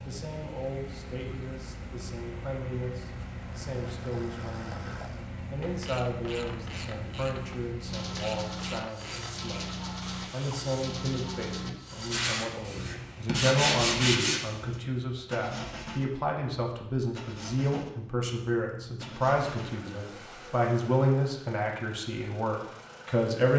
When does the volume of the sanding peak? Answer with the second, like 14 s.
14 s.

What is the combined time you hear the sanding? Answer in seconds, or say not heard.
3 s.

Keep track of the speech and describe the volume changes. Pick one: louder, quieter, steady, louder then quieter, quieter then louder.
louder.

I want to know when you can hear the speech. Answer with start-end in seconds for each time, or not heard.
0.0-23.5.